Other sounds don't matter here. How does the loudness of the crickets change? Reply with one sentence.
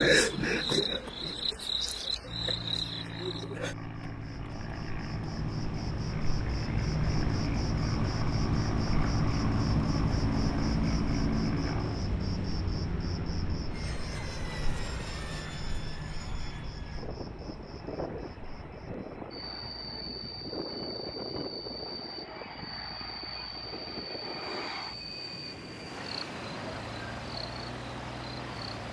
The volume of the crickets goes down.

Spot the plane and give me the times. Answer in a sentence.
You can hear the plane from 2.2 to 28.8 s.